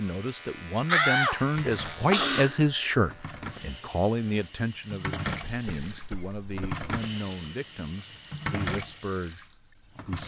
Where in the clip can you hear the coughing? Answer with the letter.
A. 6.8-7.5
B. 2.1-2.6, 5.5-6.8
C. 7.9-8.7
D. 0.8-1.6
B.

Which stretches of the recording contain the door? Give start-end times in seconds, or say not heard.
0.8-1.6.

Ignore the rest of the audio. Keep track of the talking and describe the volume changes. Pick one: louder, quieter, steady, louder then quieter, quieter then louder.
quieter.